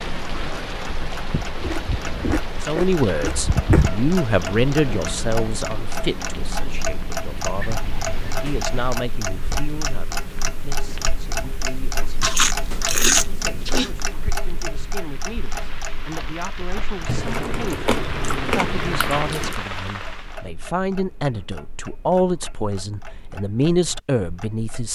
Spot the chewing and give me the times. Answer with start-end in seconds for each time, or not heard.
1.3-3.9, 12.2-13.9, 17.1-19.6.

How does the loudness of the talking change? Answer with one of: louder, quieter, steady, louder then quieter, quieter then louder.
quieter then louder.